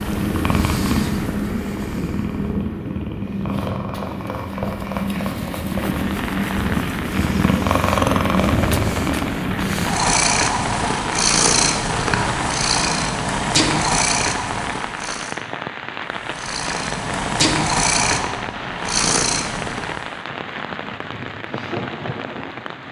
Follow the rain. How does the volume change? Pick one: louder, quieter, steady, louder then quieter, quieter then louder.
steady.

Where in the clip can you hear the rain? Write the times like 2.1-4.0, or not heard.
5.7-22.8.